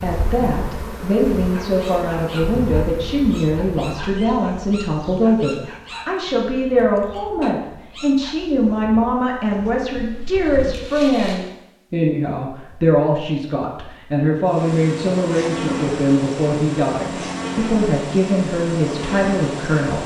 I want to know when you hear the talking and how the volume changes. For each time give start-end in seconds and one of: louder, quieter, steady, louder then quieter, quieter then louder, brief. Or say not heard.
0.0-20.0 steady.